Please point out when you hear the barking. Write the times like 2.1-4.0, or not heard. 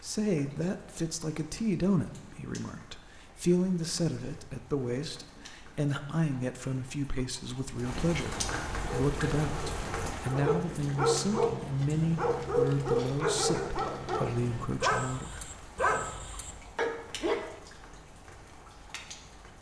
8.8-17.5.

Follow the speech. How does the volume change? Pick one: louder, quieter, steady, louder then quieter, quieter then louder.
steady.